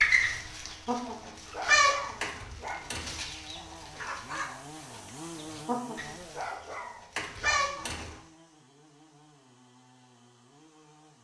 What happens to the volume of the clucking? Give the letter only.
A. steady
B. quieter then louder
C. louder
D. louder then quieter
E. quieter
B.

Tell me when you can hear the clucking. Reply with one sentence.
You can hear the clucking from 0.0 to 8.2 s.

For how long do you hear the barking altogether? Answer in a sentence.
You can hear the barking for 4 seconds altogether.